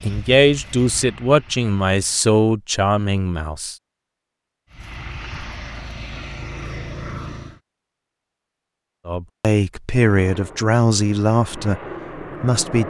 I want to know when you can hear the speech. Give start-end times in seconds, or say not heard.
0.0-3.8, 9.1-11.8, 12.4-12.8.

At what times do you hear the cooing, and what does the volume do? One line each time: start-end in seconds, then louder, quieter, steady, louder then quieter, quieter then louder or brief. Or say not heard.
not heard.